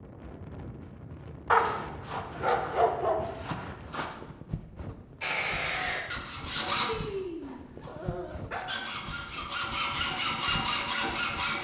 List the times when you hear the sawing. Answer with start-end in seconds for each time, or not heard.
5.2-6.9, 8.7-11.5.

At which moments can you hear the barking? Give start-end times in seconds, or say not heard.
1.5-4.1, 6.8-8.8.